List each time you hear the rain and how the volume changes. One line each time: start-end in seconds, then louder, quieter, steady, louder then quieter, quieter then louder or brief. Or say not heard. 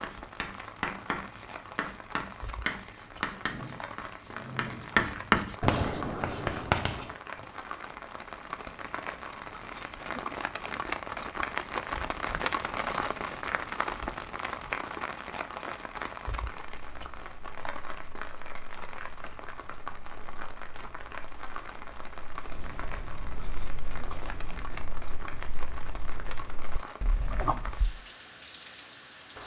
0.0-29.4 louder then quieter.